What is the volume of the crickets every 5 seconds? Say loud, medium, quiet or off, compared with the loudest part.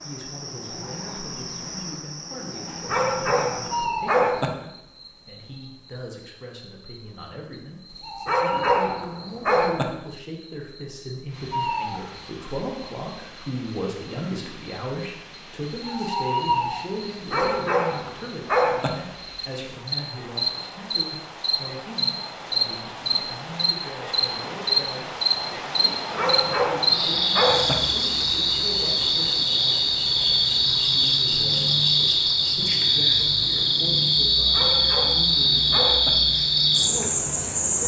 quiet, quiet, quiet, medium, loud, loud, loud, loud.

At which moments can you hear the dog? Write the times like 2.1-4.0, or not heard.
2.9-4.5, 8.2-9.8, 17.3-18.9, 26.1-27.8, 34.5-36.1.